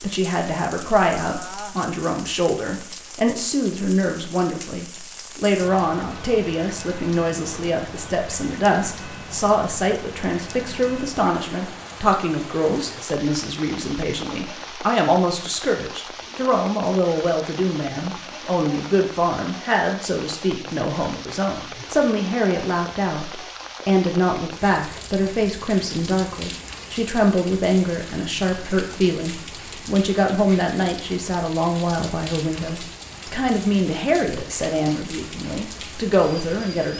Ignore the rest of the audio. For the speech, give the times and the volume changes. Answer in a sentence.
You can hear the speech from 0.0 to 36.9 s, at a steady volume.